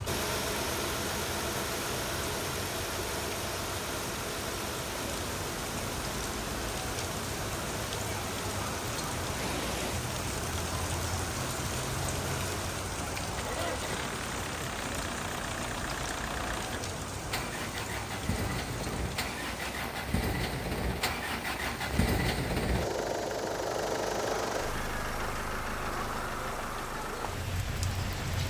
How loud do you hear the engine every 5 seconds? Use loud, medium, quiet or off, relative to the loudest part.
loud, medium, medium, medium, loud, medium.